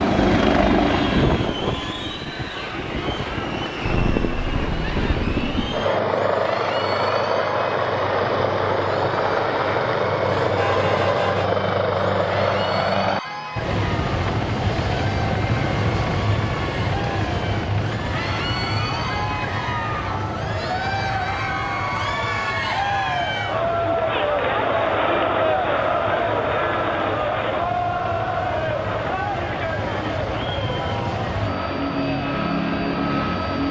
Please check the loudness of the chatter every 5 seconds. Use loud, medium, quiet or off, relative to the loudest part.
medium, medium, medium, medium, loud, loud, medium.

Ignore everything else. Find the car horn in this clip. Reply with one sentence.
You can hear the car horn from 10.3 to 11.5 s.